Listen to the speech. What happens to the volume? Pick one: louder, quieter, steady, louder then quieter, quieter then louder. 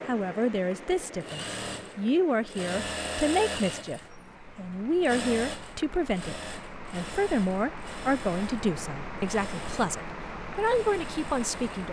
steady.